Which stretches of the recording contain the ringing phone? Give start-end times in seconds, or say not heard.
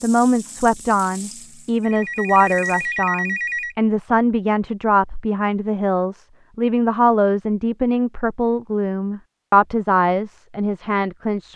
1.8-3.8.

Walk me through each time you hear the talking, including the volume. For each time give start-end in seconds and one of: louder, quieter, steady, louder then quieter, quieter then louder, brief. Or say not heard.
0.0-11.5 steady.